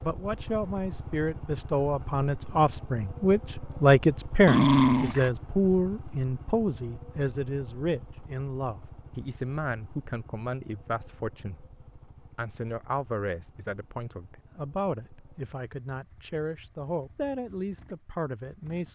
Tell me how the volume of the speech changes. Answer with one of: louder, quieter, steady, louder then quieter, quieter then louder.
quieter.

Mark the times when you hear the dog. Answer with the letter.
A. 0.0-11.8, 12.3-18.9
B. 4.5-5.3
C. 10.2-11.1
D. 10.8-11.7
B.